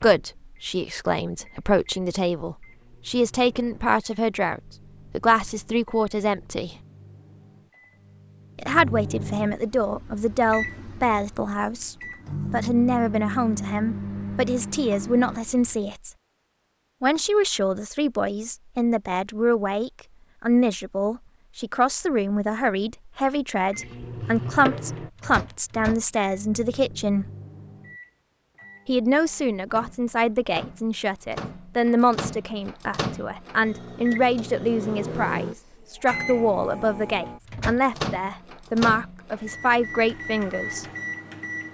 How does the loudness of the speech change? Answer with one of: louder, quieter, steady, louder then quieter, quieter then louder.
steady.